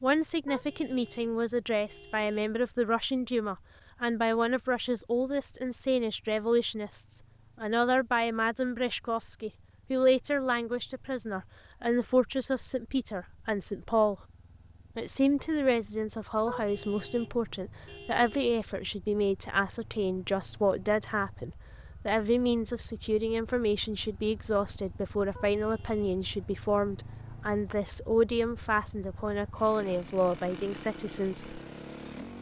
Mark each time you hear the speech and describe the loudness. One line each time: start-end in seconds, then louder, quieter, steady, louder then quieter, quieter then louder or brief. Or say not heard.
0.0-14.2 steady
14.9-31.6 steady.